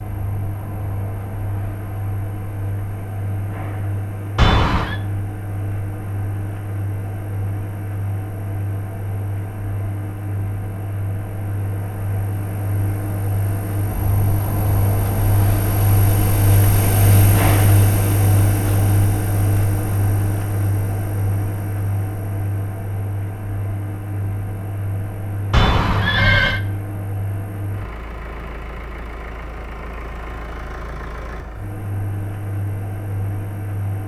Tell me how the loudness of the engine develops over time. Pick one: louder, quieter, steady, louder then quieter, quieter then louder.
louder then quieter.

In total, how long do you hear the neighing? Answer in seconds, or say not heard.
2 s.